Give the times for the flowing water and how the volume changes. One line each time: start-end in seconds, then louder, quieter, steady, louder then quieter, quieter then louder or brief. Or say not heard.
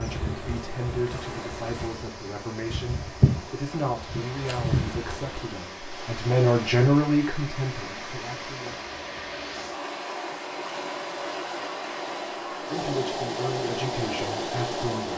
0.0-15.1 louder.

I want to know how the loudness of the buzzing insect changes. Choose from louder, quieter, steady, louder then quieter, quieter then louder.
louder.